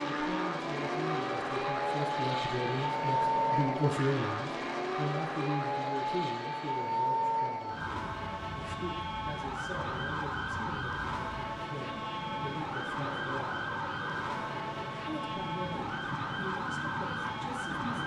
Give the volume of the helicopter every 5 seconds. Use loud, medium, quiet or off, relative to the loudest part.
loud, medium, medium, medium.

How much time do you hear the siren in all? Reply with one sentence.
The siren can be heard for 18 seconds in total.